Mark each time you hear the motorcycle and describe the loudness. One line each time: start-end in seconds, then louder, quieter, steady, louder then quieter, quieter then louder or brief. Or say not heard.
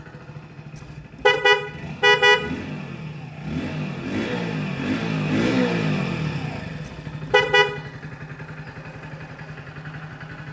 0.0-10.4 louder then quieter.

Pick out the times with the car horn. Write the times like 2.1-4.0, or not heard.
1.2-2.4, 7.3-7.7.